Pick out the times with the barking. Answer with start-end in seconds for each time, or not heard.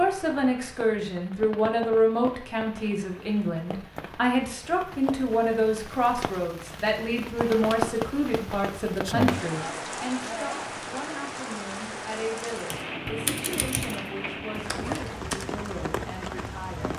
not heard.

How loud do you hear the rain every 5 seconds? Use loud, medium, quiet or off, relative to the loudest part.
medium, loud, loud, loud.